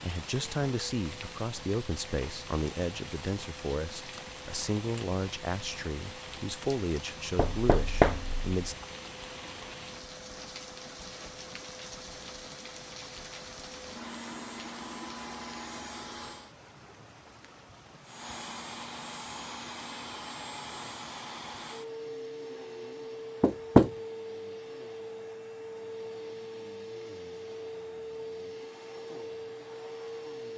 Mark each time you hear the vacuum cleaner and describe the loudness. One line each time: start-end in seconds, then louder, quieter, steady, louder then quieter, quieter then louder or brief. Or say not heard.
0.1-16.6 louder
18.0-30.5 steady.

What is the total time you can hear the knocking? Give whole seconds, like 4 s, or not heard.
2 s.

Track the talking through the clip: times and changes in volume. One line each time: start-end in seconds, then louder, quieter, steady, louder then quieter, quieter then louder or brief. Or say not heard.
0.0-8.8 steady.